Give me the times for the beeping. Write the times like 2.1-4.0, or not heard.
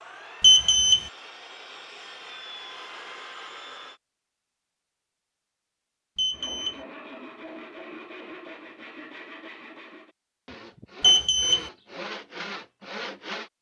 0.4-1.1, 6.2-6.8, 11.0-11.7.